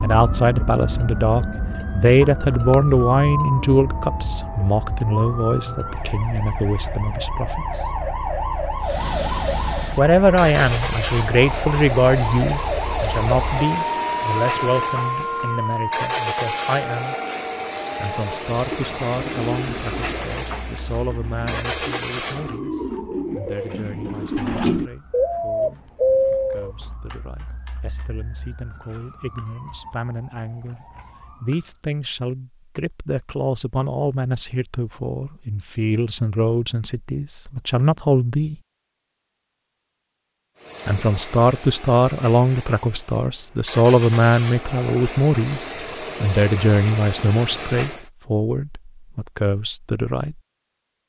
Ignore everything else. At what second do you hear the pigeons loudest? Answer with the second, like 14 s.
26 s.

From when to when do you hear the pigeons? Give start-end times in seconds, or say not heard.
18.7-26.7.